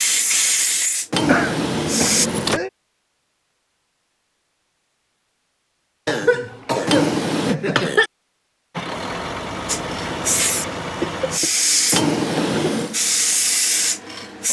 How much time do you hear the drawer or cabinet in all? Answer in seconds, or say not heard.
3 s.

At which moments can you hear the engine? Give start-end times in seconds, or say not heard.
8.7-11.4.